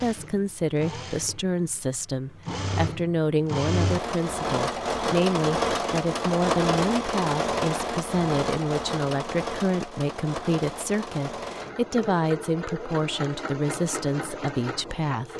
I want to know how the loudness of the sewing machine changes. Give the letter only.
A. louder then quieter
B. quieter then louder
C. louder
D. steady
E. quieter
A.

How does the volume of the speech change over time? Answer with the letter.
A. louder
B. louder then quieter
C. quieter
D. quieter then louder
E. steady
E.